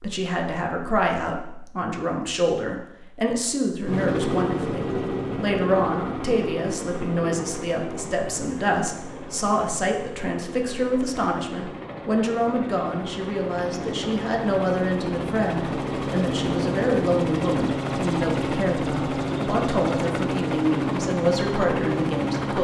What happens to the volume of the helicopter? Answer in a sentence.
The volume of the helicopter goes down, then up.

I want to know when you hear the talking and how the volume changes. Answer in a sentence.
You can hear the talking from 0.0 to 22.5 s, at a steady volume.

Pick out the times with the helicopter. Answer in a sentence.
The helicopter can be heard from 3.9 to 22.5 s.